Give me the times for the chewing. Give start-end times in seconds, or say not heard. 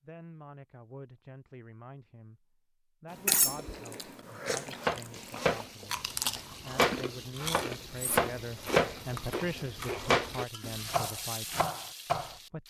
3.1-10.4.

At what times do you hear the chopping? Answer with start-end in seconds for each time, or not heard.
4.8-12.3.